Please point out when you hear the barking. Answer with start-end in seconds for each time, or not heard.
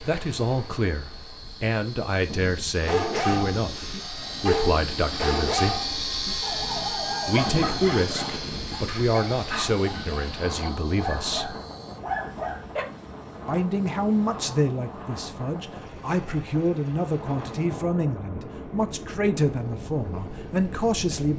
2.8-12.8.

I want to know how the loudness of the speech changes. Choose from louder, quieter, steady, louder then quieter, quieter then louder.
steady.